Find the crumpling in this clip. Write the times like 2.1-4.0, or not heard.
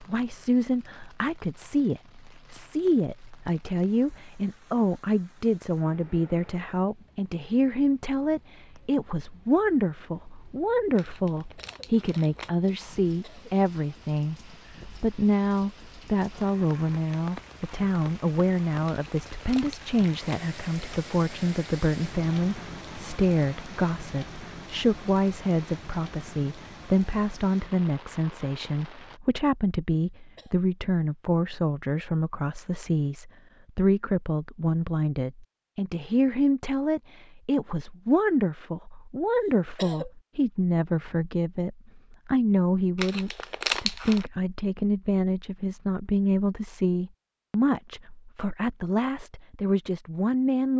10.9-12.5, 18.9-20.4, 43.0-44.2.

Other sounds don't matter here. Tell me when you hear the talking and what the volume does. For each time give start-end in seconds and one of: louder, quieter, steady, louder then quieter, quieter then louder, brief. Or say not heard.
0.0-50.7 steady.